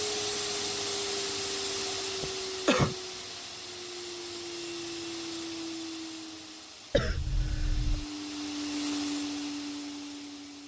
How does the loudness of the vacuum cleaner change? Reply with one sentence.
The loudness of the vacuum cleaner goes down, then up.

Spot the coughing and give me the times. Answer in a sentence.
The coughing can be heard from 2.2 to 3.0 s and from 6.9 to 8.1 s.